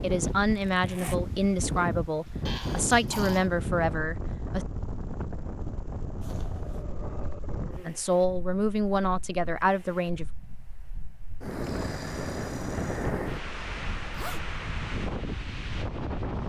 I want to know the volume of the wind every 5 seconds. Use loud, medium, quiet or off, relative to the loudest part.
loud, medium, loud, loud.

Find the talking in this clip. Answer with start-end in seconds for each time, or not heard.
0.0-4.7, 7.8-10.2.